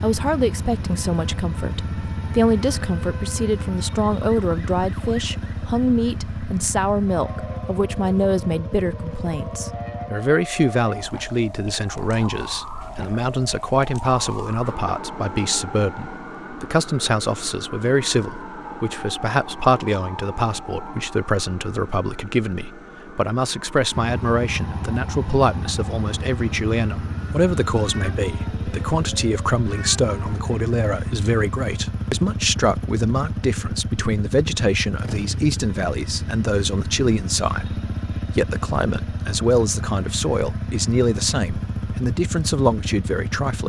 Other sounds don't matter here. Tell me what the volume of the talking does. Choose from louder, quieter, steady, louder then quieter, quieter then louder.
steady.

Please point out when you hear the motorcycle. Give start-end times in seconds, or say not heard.
0.0-10.1, 23.9-43.6.